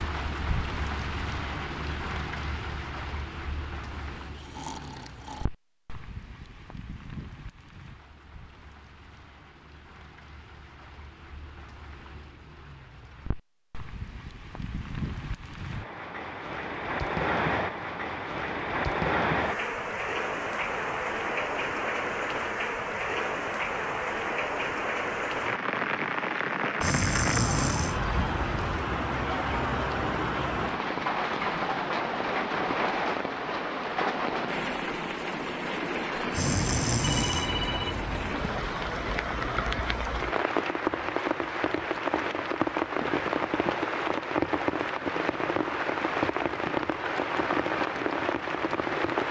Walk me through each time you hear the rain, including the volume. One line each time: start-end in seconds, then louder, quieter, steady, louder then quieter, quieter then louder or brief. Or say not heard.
0.0-49.2 louder.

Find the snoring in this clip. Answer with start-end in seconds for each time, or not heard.
3.9-5.5, 26.8-28.8, 36.3-38.4.